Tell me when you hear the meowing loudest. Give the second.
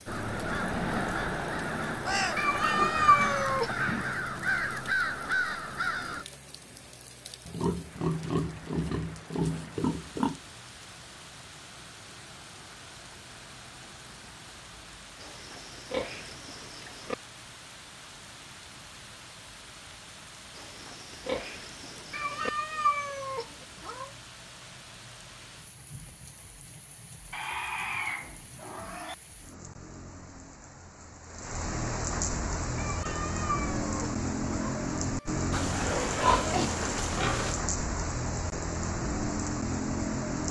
3 s.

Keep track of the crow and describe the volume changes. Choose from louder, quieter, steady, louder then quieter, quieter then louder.
steady.